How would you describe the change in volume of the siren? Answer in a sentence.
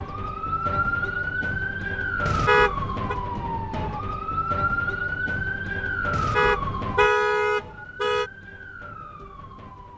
The loudness of the siren goes down.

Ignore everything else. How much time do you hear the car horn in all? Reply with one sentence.
The car horn can be heard for 3 seconds in total.